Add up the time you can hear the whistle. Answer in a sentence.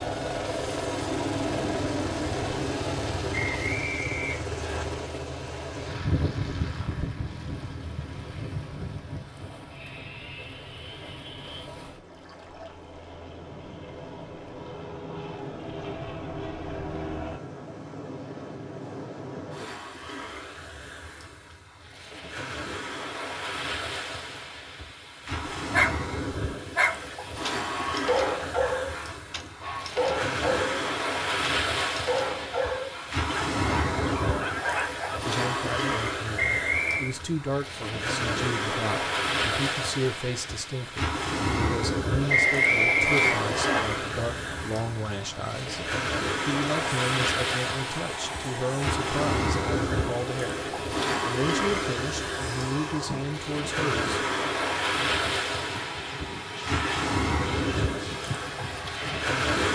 You can hear the whistle for 4 seconds altogether.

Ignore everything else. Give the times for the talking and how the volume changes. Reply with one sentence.
The talking can be heard from 35.2 to 54.2 s, at a steady volume.